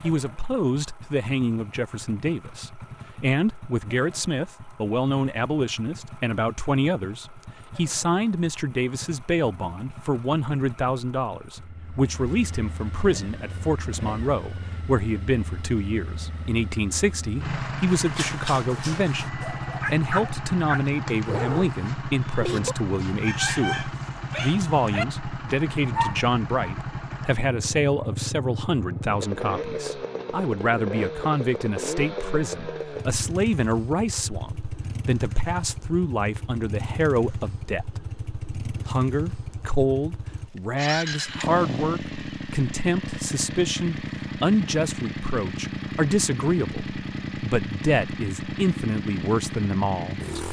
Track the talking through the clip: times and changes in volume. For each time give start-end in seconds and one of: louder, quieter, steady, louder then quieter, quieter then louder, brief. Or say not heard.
0.0-50.2 steady.